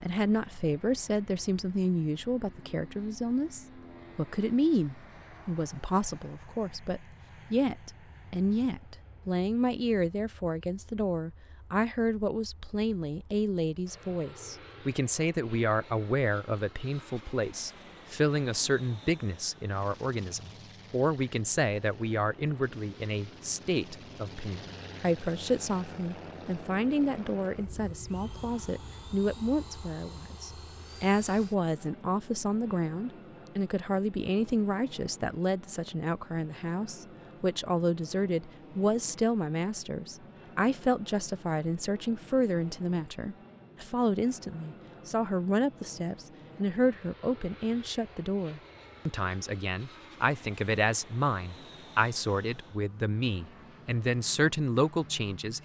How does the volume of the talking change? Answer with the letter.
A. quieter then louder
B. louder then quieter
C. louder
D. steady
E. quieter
D.